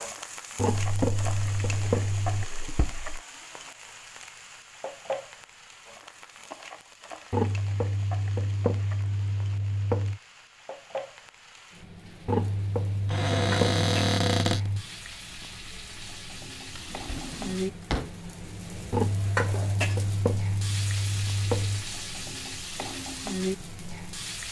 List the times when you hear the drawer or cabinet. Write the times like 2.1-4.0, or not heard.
0.8-3.2, 13.1-14.7, 16.7-18.2.